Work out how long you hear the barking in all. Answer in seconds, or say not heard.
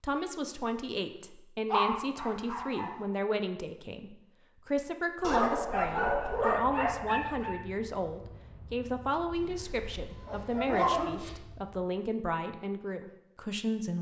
6 s.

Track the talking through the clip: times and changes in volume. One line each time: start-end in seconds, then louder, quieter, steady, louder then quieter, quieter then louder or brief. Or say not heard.
0.0-13.9 steady.